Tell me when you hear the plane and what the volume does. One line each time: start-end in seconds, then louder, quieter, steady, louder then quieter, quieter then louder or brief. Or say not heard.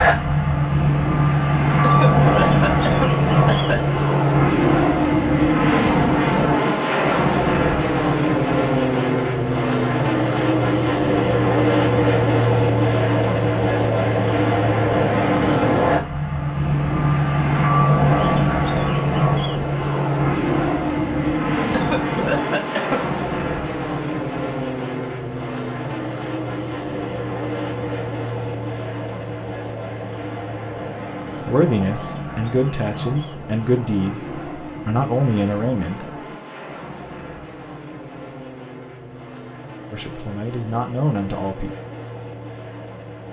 0.0-43.2 quieter.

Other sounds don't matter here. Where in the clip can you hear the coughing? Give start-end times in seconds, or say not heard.
1.8-3.9, 21.7-23.1.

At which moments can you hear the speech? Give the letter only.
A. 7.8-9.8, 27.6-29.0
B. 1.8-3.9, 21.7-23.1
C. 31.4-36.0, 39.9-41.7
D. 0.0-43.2
C.